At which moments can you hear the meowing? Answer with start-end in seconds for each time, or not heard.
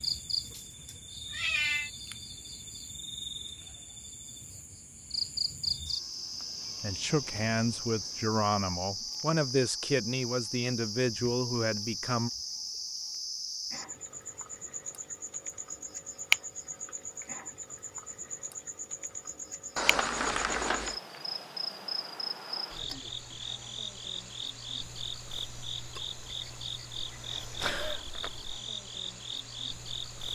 0.5-1.9, 19.8-21.0.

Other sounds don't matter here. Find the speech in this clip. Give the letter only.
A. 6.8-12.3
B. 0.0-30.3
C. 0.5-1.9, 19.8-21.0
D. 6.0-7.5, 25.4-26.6
A.